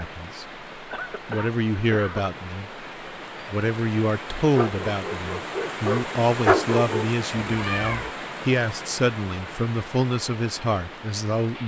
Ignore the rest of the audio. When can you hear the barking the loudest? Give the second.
7 s.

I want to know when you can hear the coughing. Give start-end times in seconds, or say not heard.
0.9-2.4.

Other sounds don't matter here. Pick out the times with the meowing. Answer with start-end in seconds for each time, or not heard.
7.3-8.1.